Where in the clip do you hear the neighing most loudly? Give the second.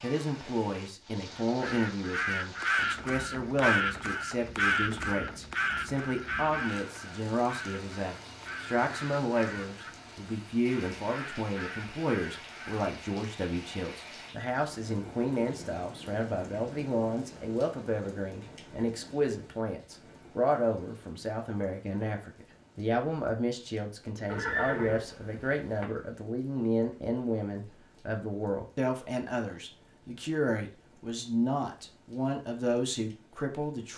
25 s.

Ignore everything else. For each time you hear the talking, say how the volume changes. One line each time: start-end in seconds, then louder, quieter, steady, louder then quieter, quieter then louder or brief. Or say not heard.
0.0-33.9 steady.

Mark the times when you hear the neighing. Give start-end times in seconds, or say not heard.
24.2-25.9.